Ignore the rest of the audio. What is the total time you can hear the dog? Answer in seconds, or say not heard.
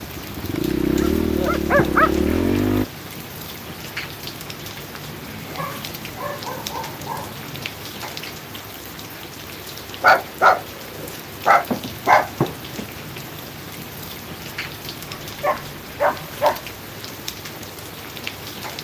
8 s.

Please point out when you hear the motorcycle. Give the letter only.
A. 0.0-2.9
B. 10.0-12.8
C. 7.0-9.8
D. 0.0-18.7
A.